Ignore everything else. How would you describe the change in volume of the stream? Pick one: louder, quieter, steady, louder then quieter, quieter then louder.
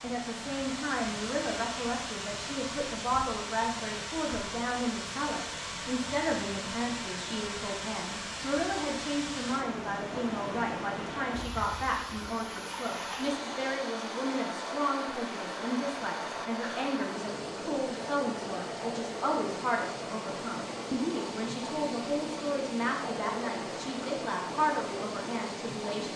steady.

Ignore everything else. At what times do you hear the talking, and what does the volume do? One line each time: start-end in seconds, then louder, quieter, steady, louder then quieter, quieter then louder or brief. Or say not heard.
0.0-26.1 steady.